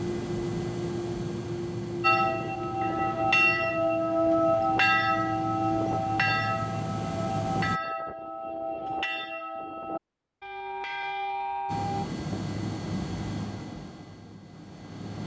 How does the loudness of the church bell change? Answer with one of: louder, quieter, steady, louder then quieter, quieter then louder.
quieter.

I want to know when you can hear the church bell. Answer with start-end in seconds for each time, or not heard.
2.0-12.1.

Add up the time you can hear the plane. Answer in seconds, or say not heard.
11 s.